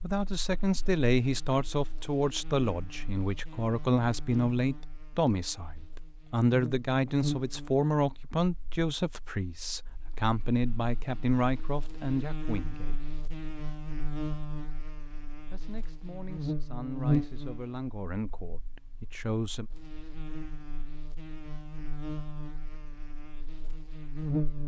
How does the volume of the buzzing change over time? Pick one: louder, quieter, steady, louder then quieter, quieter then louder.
louder then quieter.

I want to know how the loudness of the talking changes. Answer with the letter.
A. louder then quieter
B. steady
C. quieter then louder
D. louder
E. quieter
E.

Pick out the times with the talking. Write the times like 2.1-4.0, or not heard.
0.0-13.0, 15.5-19.6.